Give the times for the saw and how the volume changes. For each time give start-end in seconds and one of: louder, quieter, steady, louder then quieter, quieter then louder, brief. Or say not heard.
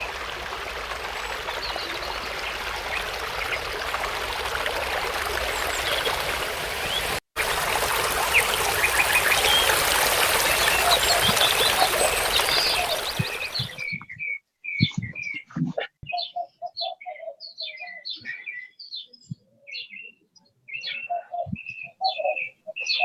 not heard.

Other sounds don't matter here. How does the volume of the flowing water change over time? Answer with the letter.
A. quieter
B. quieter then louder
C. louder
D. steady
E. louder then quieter
C.